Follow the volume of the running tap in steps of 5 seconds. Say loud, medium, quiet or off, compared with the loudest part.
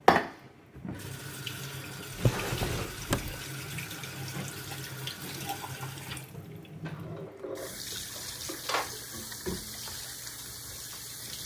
loud, medium, medium.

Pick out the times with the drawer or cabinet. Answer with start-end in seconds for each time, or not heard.
2.1-3.4, 6.8-8.9.